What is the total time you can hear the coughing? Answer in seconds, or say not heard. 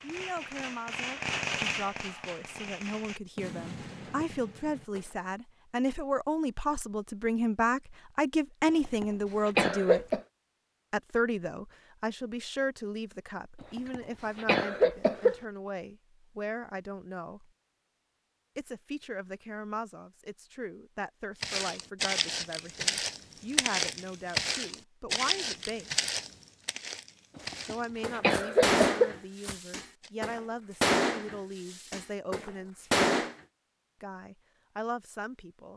5 s.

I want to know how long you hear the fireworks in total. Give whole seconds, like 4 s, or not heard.
11 s.